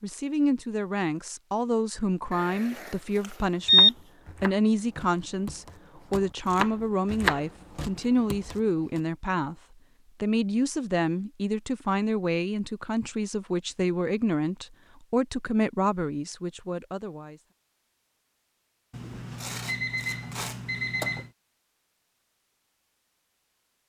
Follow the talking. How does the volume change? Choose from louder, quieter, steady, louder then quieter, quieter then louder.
steady.